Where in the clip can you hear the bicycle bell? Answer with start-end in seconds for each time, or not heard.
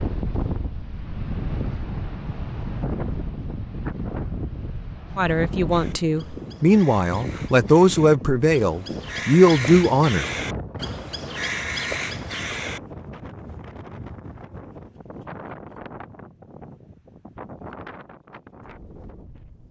not heard.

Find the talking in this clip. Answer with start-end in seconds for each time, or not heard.
5.2-10.2.